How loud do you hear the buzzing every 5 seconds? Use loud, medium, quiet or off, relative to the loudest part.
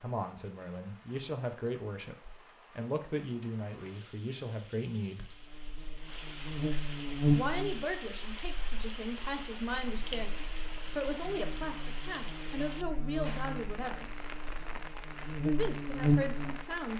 off, loud, quiet, loud.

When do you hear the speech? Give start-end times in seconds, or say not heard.
0.0-5.3, 7.3-14.1, 15.4-16.9.